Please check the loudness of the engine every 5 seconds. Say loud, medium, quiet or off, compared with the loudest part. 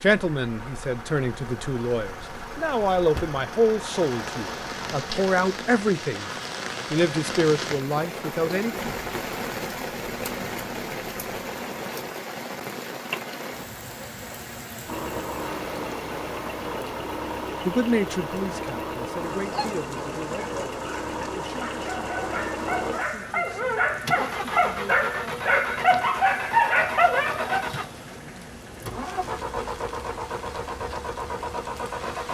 medium, medium, medium, loud, loud, loud, loud.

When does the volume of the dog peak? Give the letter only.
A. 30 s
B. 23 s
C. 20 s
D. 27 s
D.